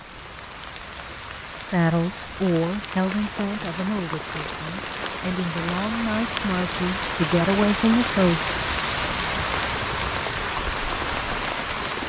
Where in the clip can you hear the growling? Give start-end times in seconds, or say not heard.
not heard.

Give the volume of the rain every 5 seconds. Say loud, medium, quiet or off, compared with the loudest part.
medium, loud, loud.